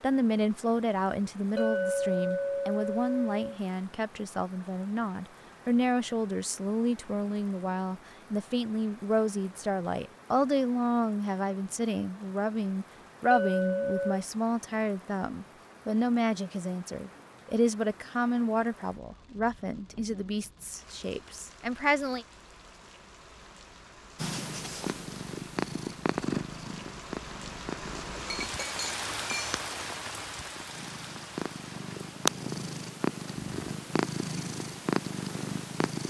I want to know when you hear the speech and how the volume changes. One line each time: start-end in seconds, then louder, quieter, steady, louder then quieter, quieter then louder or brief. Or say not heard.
0.0-22.2 steady.